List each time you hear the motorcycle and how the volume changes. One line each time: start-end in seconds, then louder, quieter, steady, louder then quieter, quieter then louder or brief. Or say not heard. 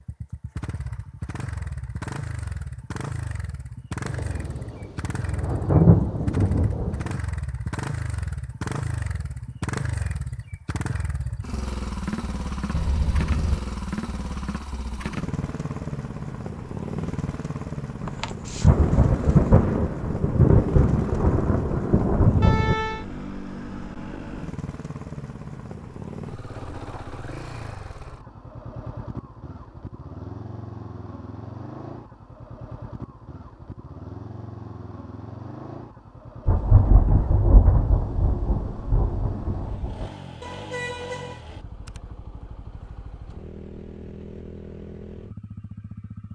0.0-46.2 quieter.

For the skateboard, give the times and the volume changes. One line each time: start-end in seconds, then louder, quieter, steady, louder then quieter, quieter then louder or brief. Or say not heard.
not heard.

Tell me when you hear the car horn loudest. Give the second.
23 s.